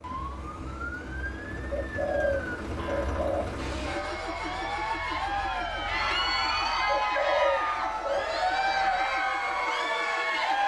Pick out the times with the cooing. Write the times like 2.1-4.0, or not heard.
1.7-3.5, 6.8-8.2.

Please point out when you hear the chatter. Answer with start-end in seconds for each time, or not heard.
3.8-10.6.